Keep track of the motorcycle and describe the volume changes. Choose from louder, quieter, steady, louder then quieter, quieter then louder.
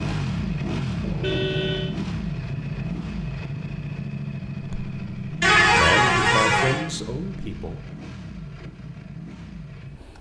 quieter.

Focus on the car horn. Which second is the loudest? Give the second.
6 s.